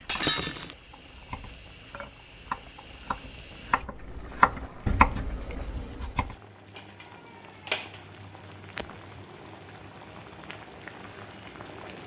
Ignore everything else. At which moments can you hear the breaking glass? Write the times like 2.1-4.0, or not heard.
0.1-0.8.